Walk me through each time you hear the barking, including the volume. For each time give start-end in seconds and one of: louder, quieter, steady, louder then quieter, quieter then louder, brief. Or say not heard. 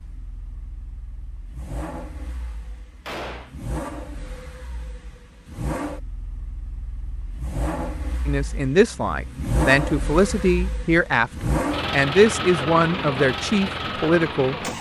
not heard.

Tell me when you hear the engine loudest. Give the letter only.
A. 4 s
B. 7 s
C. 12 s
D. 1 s
C.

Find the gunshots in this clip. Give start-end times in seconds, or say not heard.
3.0-3.5.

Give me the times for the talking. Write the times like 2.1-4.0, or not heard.
8.2-11.3, 11.9-14.6.